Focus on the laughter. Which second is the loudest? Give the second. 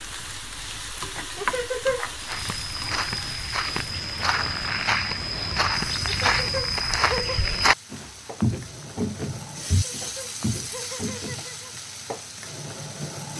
2 s.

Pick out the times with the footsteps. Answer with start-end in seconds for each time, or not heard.
2.2-11.4.